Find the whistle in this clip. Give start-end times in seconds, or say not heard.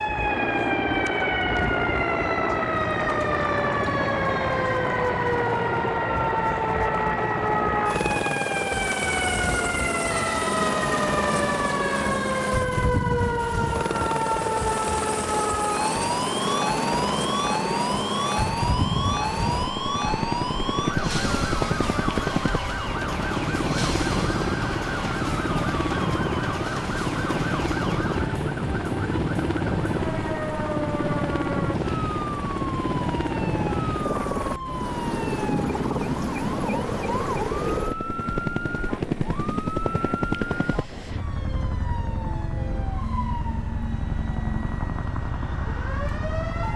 not heard.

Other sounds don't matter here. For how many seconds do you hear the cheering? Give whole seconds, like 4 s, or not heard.
2 s.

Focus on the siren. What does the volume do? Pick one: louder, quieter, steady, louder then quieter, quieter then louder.
quieter.